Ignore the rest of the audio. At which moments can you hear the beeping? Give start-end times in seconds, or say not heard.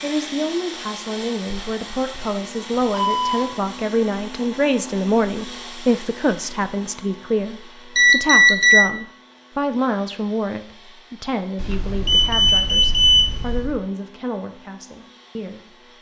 1.5-3.4, 8.0-8.8, 11.6-13.8.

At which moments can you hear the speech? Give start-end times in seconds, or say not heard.
0.0-15.8.